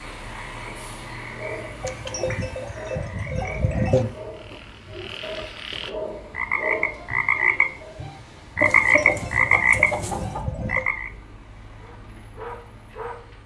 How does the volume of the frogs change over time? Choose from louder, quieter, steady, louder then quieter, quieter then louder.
louder.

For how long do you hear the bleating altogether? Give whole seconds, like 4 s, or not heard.
4 s.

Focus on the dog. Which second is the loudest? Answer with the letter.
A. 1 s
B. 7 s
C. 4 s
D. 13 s
B.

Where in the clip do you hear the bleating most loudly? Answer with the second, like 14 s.
4 s.